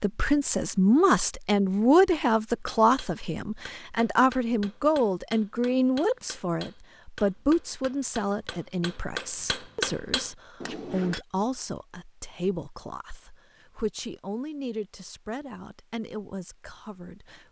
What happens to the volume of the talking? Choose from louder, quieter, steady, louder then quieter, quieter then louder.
quieter.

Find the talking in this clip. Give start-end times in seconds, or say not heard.
0.0-17.4.